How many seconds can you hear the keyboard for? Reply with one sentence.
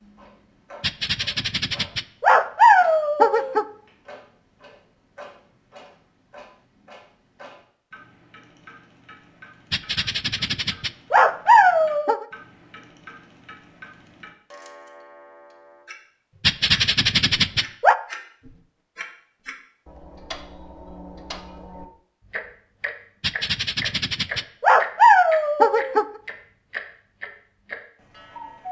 You can't hear the keyboard here.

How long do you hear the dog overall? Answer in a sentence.
The dog can be heard for 10 seconds in total.